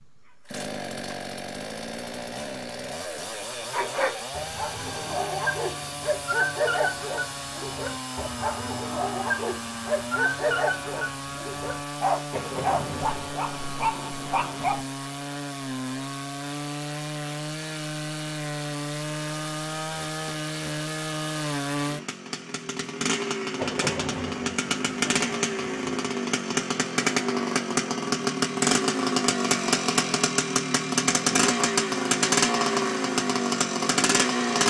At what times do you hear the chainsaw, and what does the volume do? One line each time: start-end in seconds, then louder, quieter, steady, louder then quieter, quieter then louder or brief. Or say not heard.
0.0-34.6 louder.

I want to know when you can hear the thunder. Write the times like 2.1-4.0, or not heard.
12.3-14.8, 23.6-25.9.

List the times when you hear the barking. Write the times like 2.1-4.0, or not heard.
3.7-14.8.